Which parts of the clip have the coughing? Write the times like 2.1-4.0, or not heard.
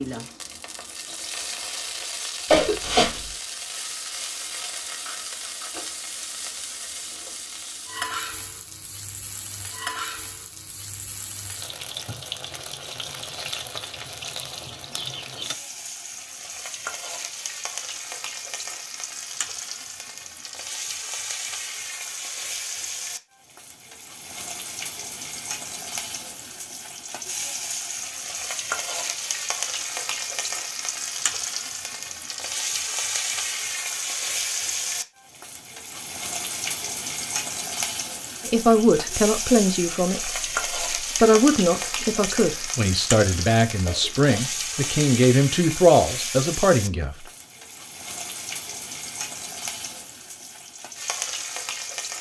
2.5-3.2, 43.9-44.5.